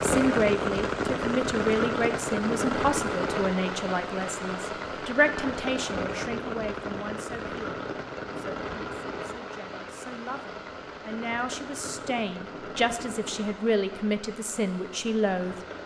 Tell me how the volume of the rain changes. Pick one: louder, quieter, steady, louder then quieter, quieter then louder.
quieter.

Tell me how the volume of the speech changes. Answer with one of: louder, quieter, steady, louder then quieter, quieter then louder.
quieter then louder.